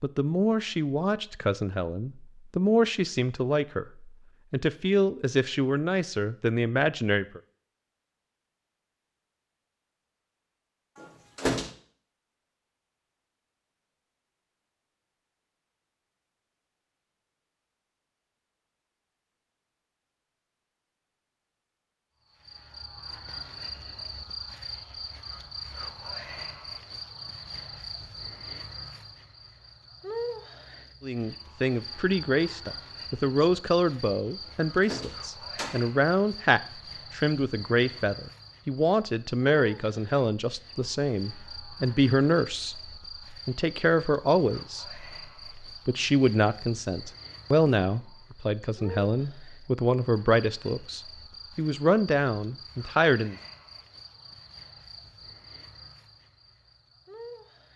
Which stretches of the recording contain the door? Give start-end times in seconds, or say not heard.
10.9-11.7, 34.5-35.8.